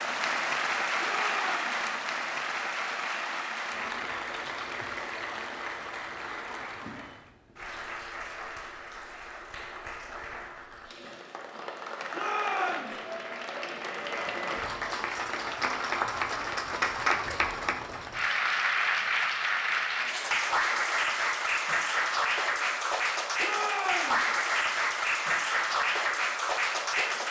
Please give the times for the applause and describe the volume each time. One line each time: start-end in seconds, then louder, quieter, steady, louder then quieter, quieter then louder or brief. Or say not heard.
0.0-27.2 quieter then louder.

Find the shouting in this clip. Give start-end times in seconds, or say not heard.
1.0-1.8, 12.1-12.9, 23.4-24.2.